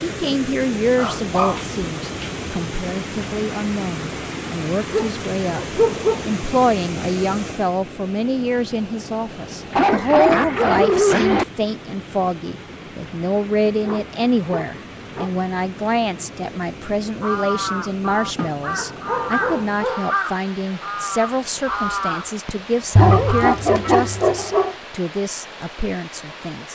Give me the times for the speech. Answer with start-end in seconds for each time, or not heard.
0.0-26.6.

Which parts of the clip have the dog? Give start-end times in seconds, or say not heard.
0.9-2.4, 4.9-6.2, 9.7-11.4, 13.7-15.3, 18.8-20.1, 22.9-24.8.